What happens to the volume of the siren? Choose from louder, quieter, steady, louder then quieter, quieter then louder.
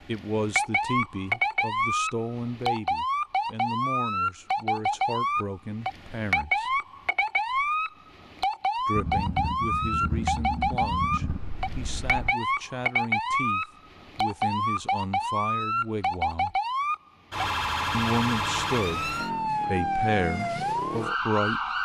steady.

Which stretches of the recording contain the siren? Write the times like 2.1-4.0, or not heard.
0.0-21.8.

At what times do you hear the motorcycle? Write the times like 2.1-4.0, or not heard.
8.9-12.3.